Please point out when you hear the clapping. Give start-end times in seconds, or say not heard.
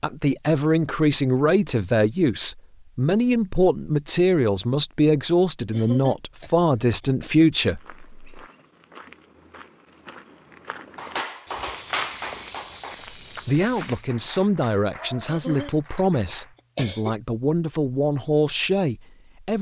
10.9-16.6.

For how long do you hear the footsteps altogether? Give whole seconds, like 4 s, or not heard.
6 s.